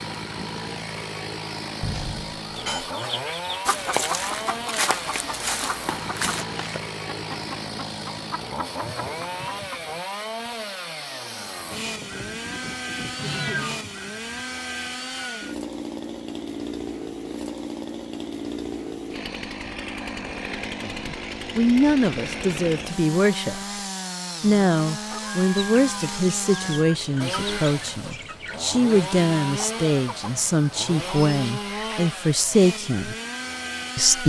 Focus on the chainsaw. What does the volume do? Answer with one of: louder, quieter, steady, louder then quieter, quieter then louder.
steady.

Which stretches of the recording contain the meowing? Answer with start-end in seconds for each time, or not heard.
1.8-2.9, 13.2-13.8, 25.2-26.9.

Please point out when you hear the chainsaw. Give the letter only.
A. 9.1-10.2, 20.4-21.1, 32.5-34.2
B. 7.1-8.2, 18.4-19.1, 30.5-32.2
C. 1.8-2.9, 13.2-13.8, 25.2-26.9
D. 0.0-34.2
D.